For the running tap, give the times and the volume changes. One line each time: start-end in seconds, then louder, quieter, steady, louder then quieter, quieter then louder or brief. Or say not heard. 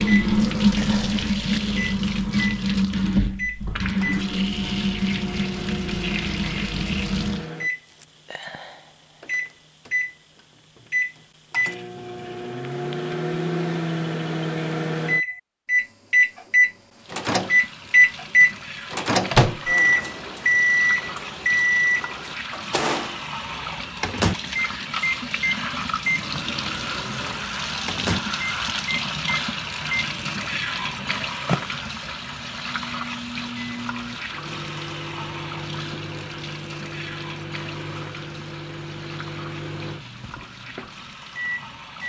0.0-7.5 quieter
16.9-42.0 louder then quieter.